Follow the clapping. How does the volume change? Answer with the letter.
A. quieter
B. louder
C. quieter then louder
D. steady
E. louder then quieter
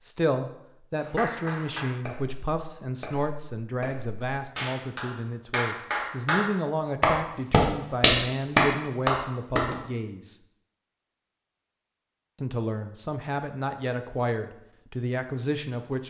B.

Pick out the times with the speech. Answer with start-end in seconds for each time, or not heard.
0.0-10.3, 12.3-16.0.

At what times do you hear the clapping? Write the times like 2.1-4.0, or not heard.
1.0-9.8.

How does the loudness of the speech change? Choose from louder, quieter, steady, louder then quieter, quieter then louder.
steady.